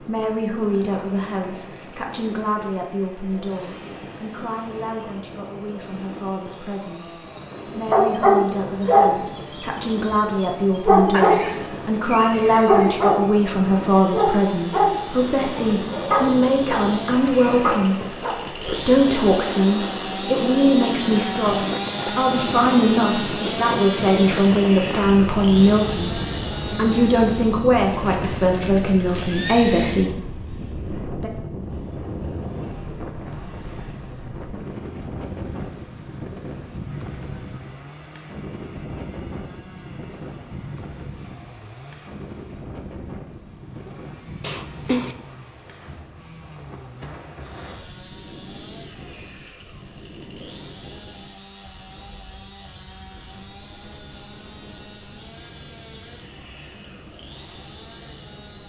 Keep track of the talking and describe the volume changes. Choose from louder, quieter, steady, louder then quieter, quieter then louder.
louder.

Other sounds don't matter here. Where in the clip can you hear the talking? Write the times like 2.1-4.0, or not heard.
0.0-31.3.